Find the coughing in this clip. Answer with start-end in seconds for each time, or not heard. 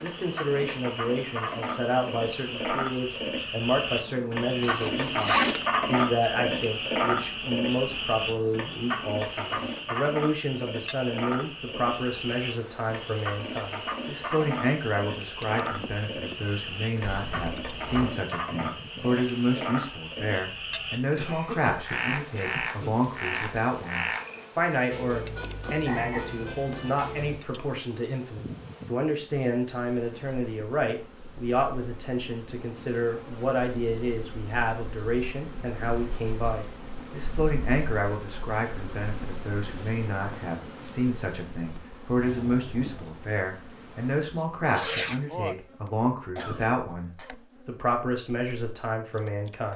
21.1-22.9, 46.4-47.4.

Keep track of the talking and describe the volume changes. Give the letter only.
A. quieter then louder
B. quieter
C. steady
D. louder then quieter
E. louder
C.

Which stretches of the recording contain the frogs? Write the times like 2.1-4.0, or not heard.
0.0-27.4.